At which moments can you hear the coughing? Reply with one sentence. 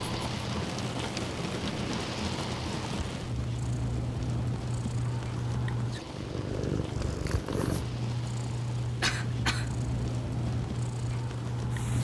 You can hear the coughing from 9.0 to 9.7 s.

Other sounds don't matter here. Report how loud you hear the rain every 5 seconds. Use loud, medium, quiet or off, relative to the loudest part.
loud, medium, medium.